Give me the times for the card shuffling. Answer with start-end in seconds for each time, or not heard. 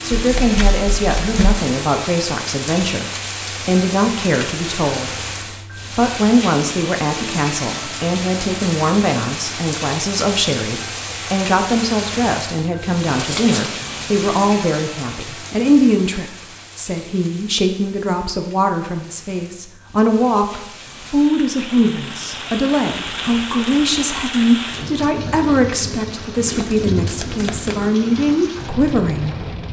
0.1-1.6, 13.2-13.8, 26.4-27.9.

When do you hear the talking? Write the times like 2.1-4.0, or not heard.
0.0-29.4.